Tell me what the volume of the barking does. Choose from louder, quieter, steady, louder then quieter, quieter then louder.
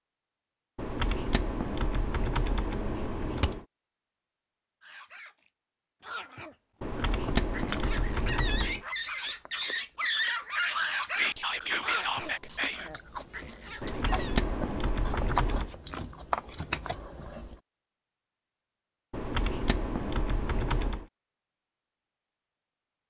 louder then quieter.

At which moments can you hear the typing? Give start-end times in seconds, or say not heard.
0.8-3.6, 6.8-8.8, 13.8-15.7, 19.1-21.1.